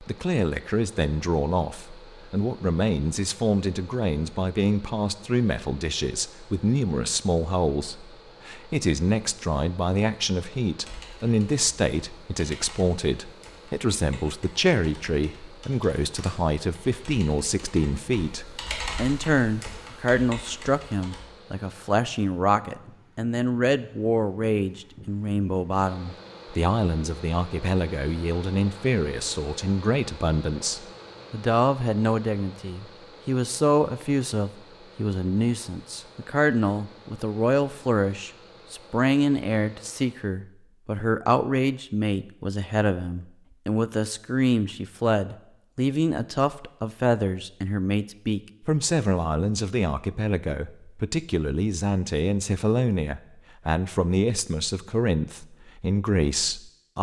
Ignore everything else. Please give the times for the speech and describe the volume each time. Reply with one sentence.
You can hear the speech from 0.0 to 56.9 s, at a steady volume.